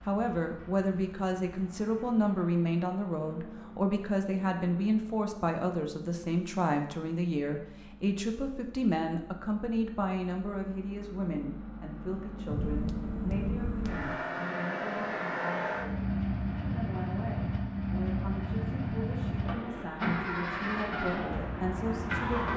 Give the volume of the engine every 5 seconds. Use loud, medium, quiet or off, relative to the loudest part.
quiet, quiet, medium, loud, loud.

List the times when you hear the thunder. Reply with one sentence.
The thunder can be heard from 12.4 to 14.2 s.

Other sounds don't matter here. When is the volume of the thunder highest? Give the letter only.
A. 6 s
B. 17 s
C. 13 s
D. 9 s
C.